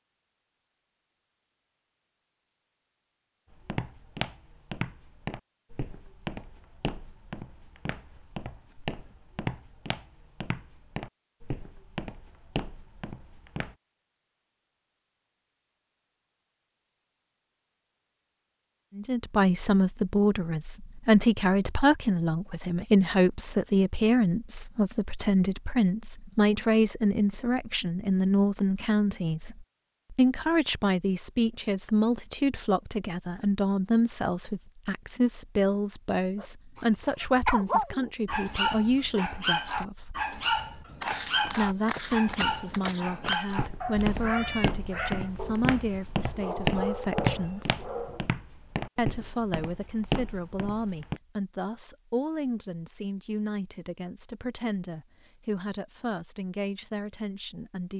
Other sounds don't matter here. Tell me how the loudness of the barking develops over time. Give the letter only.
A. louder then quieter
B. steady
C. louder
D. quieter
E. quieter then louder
D.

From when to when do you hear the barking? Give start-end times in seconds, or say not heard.
36.4-48.2.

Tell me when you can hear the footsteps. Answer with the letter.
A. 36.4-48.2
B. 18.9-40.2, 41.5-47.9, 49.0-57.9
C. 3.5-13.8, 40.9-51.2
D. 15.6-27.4
C.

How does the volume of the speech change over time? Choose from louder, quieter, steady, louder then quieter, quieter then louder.
quieter.